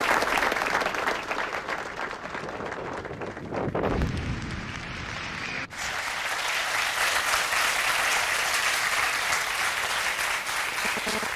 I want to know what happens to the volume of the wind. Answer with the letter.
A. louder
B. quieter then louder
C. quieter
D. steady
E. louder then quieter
E.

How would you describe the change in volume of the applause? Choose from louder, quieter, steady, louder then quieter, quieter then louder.
quieter then louder.